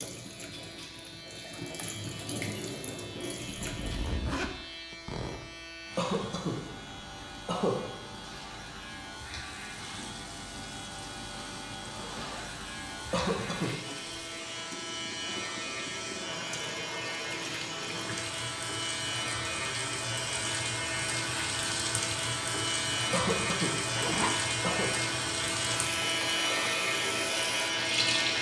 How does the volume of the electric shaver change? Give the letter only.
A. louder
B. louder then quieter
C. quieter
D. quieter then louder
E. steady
A.